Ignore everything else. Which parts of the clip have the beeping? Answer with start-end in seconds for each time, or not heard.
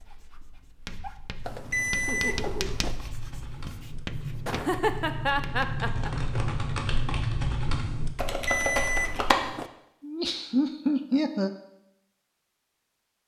1.4-3.0, 8.2-9.7.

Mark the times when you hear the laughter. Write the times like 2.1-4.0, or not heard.
2.0-2.6, 4.5-6.1, 10.0-11.5.